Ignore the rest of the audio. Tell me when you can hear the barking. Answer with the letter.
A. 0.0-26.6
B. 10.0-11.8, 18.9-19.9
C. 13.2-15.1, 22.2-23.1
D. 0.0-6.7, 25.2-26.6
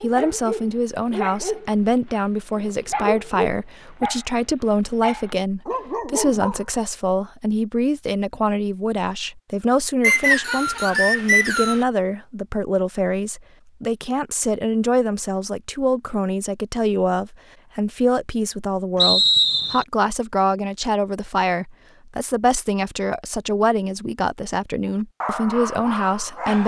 D.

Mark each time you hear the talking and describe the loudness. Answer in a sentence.
You can hear the talking from 0.0 to 26.6 s, at a steady volume.